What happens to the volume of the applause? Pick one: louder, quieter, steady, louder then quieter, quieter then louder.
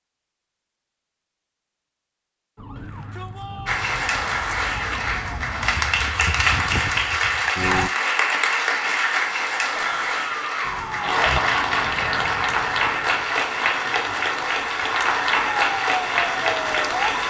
steady.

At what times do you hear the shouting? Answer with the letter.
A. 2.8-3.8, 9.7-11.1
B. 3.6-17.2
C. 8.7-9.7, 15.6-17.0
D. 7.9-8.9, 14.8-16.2
A.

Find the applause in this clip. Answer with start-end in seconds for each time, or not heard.
3.6-17.2.